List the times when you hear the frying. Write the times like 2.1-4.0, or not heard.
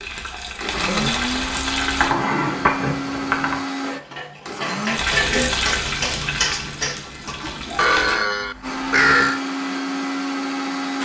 0.0-2.1, 4.9-8.2.